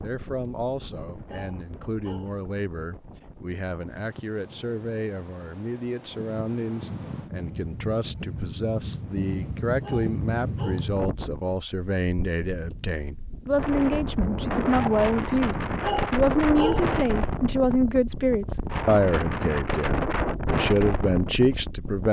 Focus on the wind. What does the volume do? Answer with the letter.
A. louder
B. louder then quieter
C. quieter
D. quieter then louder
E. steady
A.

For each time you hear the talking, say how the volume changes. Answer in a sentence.
You can hear the talking from 0.0 to 22.0 s, getting louder.